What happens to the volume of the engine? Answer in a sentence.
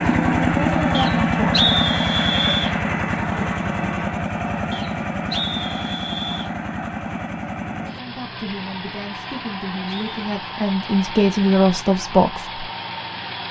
The loudness of the engine goes down.